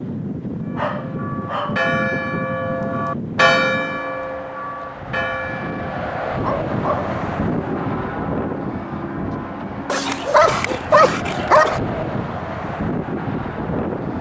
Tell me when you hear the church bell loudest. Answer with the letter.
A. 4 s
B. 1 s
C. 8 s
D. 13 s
A.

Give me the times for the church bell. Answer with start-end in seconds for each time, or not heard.
0.7-10.4.